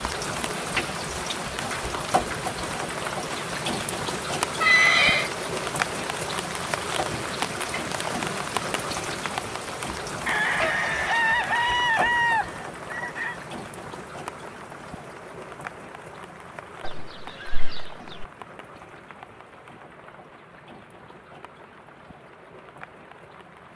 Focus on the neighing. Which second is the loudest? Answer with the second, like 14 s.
5 s.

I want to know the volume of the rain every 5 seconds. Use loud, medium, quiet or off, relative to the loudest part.
loud, loud, medium, quiet, quiet.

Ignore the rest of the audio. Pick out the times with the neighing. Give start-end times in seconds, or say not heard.
4.6-5.3, 16.9-18.2.